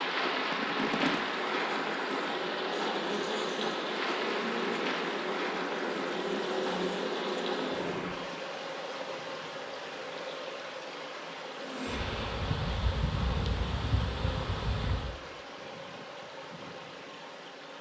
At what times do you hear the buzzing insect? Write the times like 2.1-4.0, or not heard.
0.2-8.2, 11.6-15.2.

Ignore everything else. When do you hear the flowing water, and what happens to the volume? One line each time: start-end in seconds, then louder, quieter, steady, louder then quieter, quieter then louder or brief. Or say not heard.
0.0-17.7 quieter.